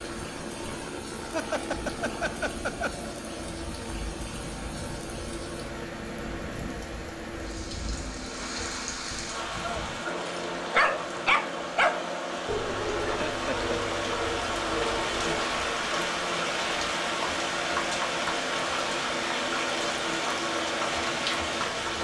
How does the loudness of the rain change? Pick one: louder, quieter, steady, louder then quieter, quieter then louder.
louder.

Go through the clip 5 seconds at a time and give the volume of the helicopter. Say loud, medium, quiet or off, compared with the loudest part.
loud, medium, loud, loud, loud.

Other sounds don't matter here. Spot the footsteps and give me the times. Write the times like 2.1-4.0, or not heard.
not heard.